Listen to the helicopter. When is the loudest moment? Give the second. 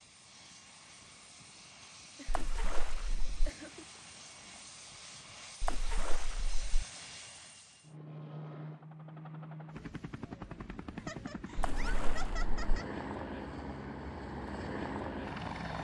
15 s.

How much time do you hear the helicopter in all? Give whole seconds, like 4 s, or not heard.
16 s.